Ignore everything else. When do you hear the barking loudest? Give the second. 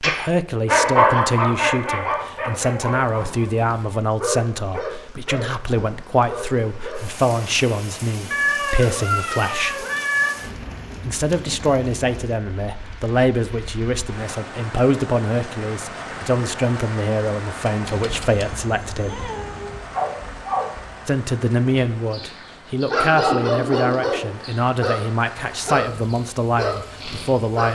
1 s.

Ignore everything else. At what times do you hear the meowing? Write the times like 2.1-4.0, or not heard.
8.3-10.3, 17.9-19.8.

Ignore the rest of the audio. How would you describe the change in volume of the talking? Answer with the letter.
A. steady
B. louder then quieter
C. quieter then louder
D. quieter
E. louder
A.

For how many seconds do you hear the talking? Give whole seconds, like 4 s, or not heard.
25 s.